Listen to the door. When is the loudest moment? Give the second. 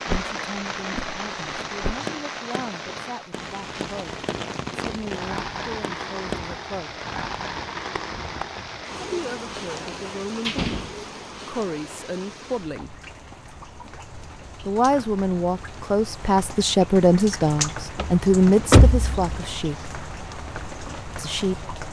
19 s.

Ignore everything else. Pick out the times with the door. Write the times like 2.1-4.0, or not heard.
0.1-2.0, 9.6-10.9, 17.9-19.4.